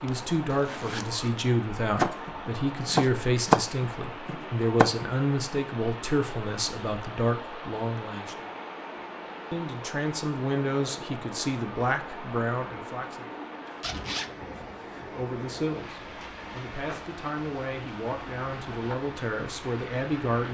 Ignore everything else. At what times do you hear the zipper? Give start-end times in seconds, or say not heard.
0.1-1.2, 13.7-14.3.